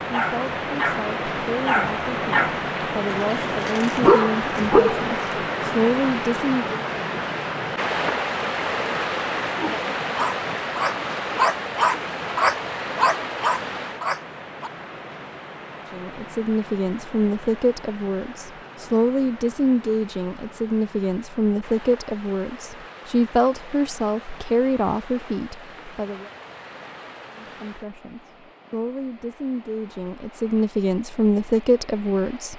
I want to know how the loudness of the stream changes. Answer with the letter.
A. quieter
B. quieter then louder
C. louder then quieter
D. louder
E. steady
A.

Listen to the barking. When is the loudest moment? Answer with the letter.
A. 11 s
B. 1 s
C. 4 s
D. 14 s
C.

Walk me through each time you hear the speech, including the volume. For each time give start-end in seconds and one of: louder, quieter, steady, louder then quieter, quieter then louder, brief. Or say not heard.
0.1-6.8 louder
15.9-26.3 steady
27.4-32.5 louder.